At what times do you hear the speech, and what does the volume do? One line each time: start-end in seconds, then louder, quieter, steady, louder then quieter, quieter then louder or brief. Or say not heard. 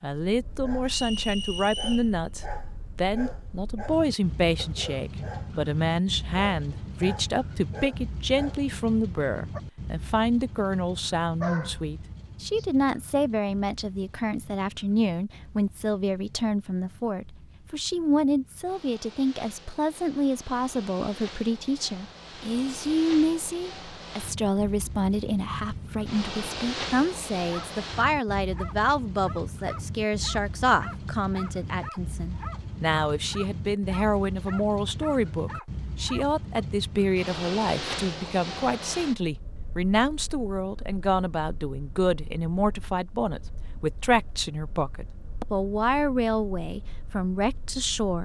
0.0-48.2 steady.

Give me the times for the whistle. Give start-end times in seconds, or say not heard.
0.8-2.1.